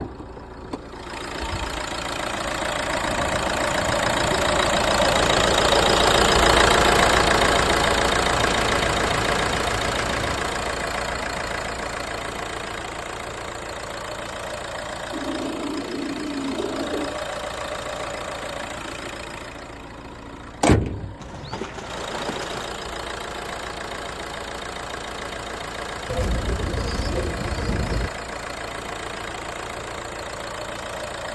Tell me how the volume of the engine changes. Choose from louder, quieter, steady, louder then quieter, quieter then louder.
quieter.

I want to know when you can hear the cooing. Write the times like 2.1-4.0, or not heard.
3.0-4.7, 8.3-10.3, 15.1-17.1, 21.2-22.8, 26.1-28.1.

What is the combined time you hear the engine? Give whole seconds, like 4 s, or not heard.
31 s.